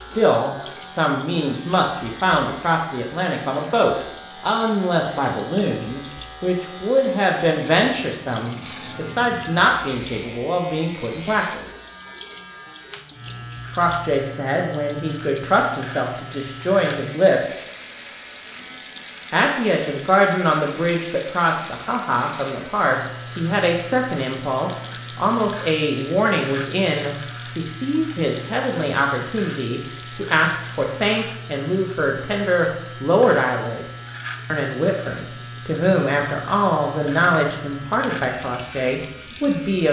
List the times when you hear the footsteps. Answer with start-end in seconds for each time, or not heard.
not heard.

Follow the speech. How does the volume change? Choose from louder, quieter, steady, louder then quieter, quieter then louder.
steady.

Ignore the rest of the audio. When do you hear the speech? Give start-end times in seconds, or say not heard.
0.0-11.7, 13.8-17.6, 19.3-33.9, 34.5-39.8.